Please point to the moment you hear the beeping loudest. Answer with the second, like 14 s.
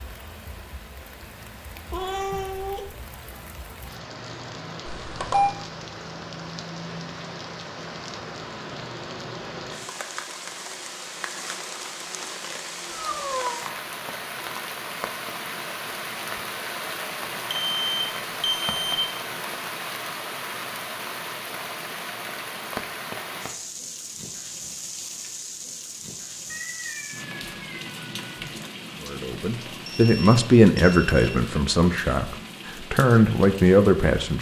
5 s.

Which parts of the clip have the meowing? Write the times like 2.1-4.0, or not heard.
1.9-2.9, 12.9-13.7, 26.5-28.5.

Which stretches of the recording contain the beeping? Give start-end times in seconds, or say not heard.
5.0-5.5, 17.5-18.9, 29.7-31.3.